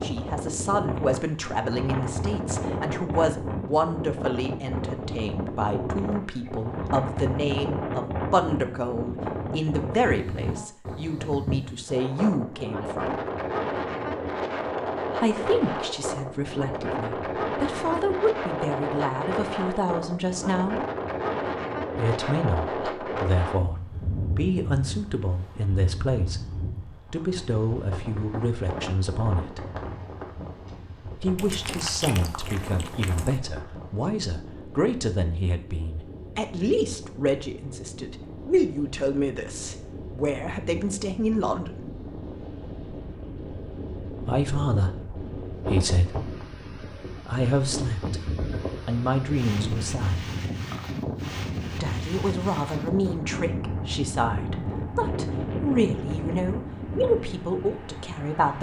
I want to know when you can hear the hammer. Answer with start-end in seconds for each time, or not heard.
not heard.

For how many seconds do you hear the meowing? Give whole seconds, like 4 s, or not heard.
2 s.